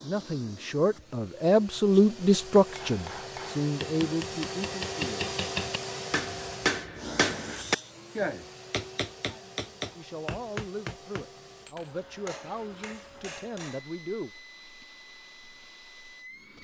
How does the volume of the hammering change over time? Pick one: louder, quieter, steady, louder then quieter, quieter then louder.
louder then quieter.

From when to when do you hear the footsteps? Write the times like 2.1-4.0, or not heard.
not heard.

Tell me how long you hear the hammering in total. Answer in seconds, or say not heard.
11 s.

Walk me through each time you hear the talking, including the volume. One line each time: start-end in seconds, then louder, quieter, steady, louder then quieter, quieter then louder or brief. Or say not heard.
0.0-5.1 louder then quieter
9.9-14.3 steady.